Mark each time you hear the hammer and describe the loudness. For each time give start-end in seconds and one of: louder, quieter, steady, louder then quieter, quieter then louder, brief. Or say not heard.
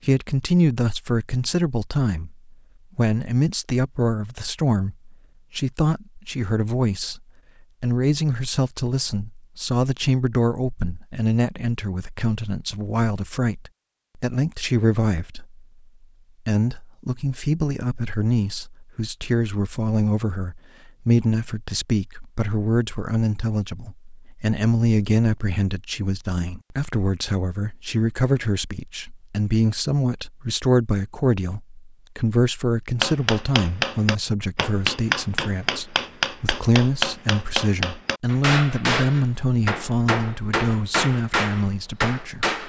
33.0-42.6 steady.